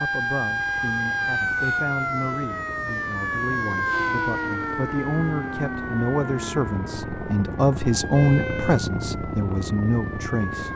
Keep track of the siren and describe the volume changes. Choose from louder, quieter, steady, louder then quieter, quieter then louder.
quieter.